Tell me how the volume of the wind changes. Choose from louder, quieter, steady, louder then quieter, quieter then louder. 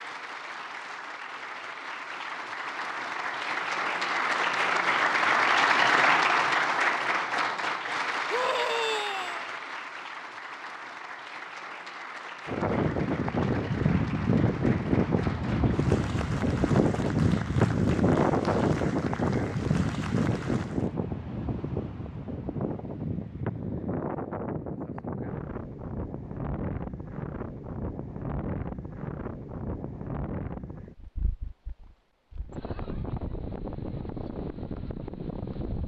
quieter.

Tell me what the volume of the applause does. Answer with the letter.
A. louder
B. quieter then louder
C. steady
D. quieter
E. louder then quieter
E.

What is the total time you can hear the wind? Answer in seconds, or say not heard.
23 s.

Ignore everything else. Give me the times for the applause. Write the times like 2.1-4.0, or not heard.
0.0-20.9.